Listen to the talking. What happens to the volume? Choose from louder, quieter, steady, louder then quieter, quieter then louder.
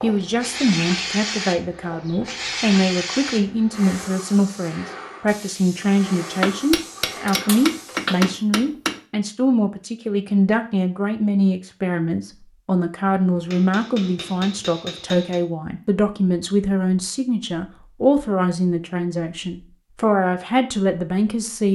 steady.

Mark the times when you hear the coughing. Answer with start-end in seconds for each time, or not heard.
not heard.